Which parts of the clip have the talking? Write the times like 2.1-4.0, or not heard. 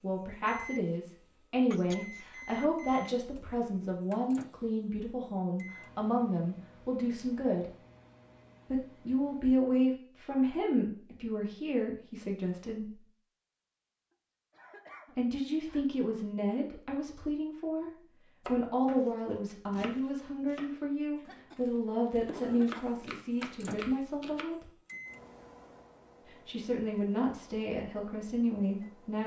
0.0-7.7, 8.7-13.0, 15.2-24.7, 26.2-29.2.